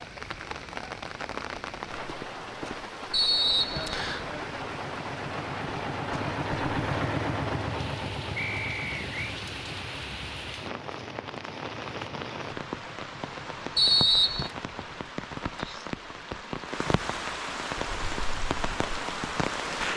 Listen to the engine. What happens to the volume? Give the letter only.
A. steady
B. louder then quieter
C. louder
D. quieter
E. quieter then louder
B.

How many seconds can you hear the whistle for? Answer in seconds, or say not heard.
3 s.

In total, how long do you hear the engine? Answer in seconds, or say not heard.
12 s.